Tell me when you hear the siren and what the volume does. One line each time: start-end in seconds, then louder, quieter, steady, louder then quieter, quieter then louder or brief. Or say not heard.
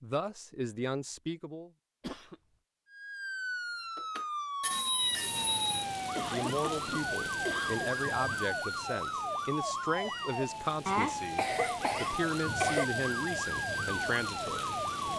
2.9-15.1 steady.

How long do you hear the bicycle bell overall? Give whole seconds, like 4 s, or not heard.
2 s.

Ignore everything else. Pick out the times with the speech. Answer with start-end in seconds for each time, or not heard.
0.0-1.7, 6.3-15.1.